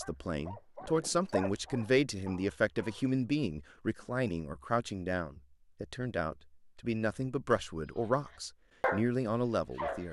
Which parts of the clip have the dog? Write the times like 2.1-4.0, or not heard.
0.0-3.0, 7.8-10.0.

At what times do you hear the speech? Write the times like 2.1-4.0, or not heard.
0.0-10.0.